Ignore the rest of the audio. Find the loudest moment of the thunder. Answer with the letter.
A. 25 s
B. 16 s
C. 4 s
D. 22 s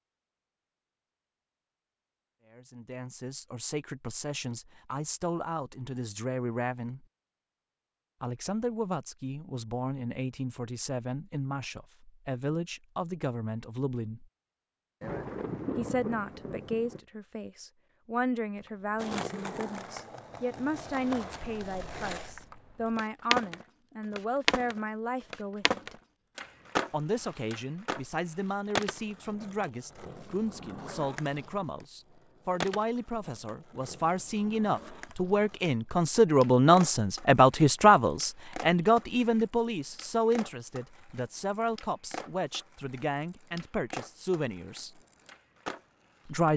B.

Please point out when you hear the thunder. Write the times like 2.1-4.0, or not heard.
15.0-17.0.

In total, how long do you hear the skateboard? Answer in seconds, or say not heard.
28 s.